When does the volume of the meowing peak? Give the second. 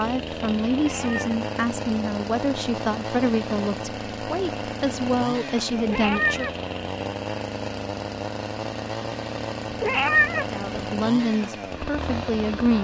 10 s.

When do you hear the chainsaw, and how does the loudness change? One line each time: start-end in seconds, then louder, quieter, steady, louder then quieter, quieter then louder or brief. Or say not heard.
0.0-12.7 steady.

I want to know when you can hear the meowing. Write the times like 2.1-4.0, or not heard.
0.8-1.4, 5.8-6.5, 9.7-10.8.